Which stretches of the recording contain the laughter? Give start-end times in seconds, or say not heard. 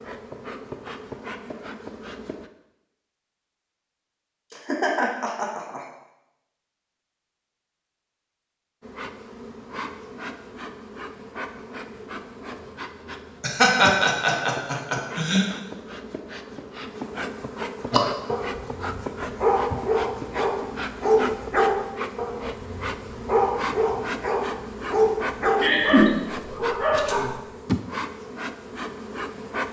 4.5-5.9, 13.4-15.4, 25.6-26.2.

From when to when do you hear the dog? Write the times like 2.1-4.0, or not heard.
17.9-27.4.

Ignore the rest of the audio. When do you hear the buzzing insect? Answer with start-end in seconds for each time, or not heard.
0.0-2.5, 8.8-29.6.